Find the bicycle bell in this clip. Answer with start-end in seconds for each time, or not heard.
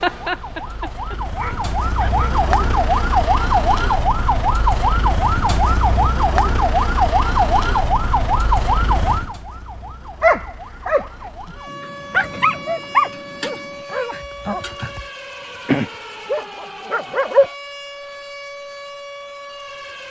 not heard.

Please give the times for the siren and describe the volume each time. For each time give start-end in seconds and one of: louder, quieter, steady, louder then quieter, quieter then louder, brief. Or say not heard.
0.1-20.0 quieter.